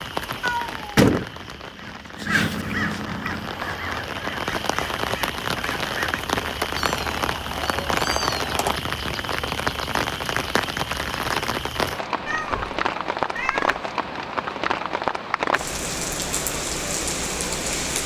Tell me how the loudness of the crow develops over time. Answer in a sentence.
The volume of the crow goes up, then down.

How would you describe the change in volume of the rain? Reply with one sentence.
The volume of the rain goes up.